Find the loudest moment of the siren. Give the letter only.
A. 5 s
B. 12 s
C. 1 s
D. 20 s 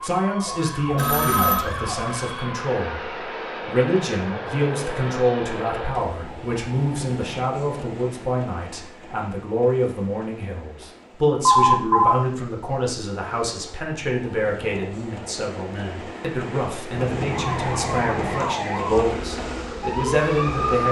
D.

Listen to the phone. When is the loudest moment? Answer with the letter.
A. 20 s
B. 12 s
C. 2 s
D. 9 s
B.